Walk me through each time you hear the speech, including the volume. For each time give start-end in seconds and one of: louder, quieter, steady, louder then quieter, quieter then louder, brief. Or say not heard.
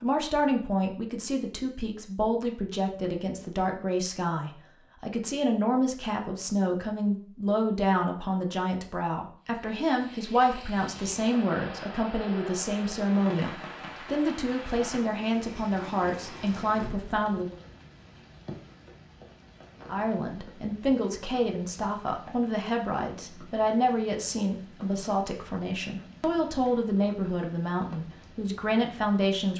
0.0-17.6 steady
19.9-29.5 steady.